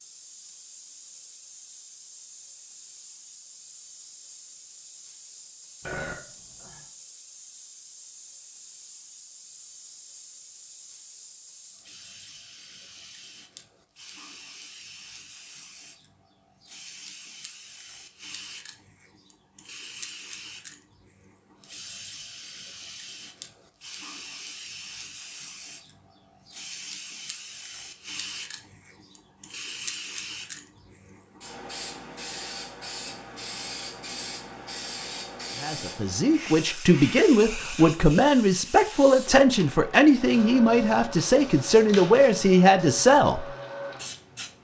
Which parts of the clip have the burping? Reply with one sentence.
The burping can be heard from 5.8 to 6.8 s.